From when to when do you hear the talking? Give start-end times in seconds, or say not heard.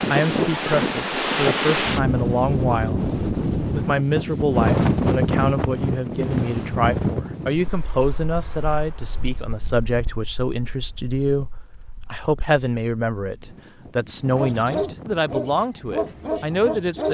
0.1-17.1.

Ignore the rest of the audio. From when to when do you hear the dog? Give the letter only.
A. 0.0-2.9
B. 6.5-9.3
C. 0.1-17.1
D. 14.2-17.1
D.